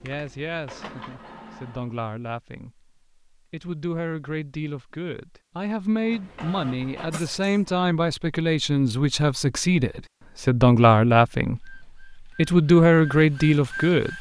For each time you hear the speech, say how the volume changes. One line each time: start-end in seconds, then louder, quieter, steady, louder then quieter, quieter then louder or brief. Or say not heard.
0.0-14.1 louder.